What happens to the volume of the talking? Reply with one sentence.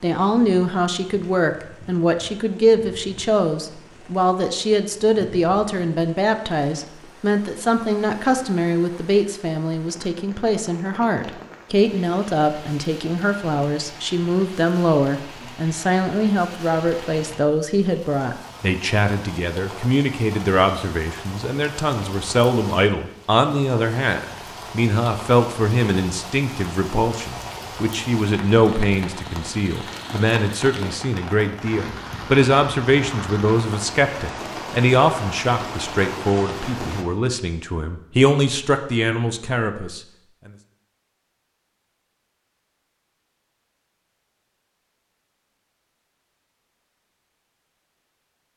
The loudness of the talking stays about the same.